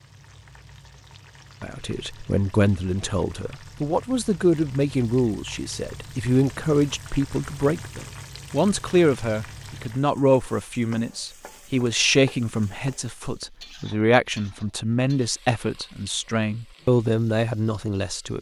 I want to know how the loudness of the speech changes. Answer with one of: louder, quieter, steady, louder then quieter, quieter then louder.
steady.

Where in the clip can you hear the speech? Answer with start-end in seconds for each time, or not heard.
1.6-18.3.